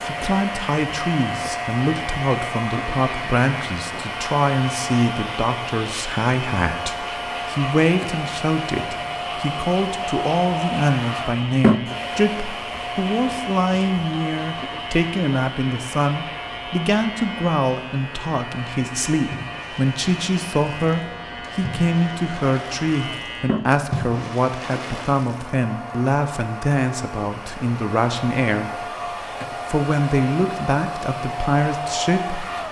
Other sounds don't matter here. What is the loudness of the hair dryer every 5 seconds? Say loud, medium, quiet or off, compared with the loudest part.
loud, loud, loud, medium, medium, medium, loud.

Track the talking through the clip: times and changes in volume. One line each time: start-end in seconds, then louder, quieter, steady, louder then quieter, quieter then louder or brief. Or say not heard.
0.1-32.5 steady.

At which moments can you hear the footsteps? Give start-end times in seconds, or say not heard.
not heard.